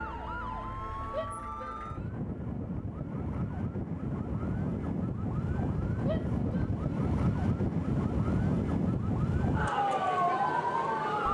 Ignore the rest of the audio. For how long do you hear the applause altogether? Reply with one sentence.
You can't hear the applause here.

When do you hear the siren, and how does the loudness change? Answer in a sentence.
The siren can be heard from 0.0 to 11.3 s, getting louder.